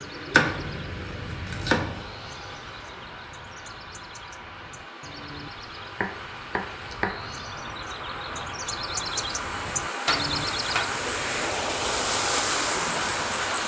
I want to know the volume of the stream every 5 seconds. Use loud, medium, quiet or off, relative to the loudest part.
quiet, medium, loud.